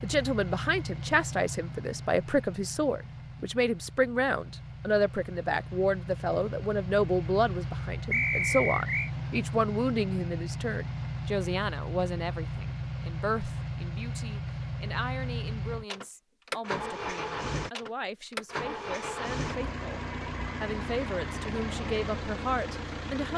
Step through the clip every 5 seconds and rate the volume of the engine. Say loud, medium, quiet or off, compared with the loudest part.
medium, loud, loud, loud, loud.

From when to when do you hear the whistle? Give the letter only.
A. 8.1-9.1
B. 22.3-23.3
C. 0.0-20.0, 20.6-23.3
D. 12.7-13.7
A.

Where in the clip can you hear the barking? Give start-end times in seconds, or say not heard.
not heard.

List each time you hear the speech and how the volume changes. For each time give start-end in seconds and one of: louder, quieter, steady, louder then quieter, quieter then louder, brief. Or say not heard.
0.0-20.0 quieter
20.6-23.3 brief.